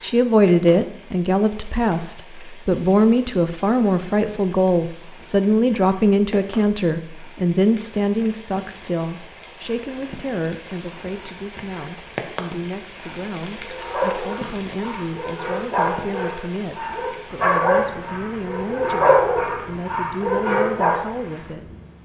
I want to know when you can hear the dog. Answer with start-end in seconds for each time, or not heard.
13.6-21.1.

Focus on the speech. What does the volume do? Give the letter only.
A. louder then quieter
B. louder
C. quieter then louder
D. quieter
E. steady
D.